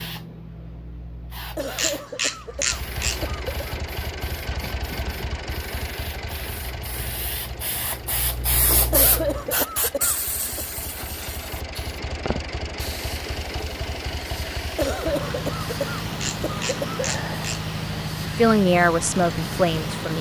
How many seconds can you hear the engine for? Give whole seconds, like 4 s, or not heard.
18 s.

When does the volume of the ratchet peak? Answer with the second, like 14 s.
3 s.